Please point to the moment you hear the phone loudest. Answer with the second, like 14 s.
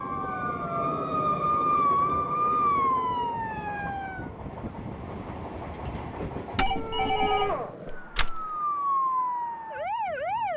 7 s.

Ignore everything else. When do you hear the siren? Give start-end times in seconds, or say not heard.
0.0-4.3, 6.7-10.5.